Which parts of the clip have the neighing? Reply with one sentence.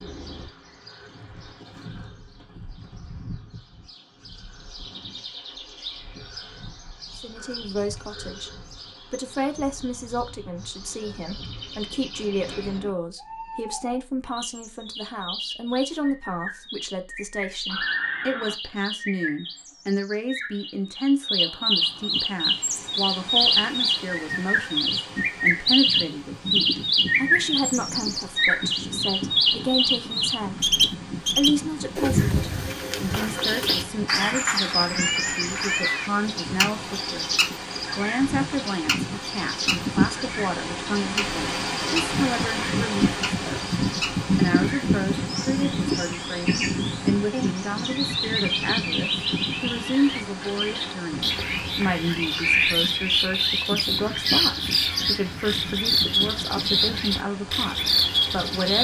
You can hear the neighing from 17.6 to 18.6 s.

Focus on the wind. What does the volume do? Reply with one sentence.
The volume of the wind goes up, then down.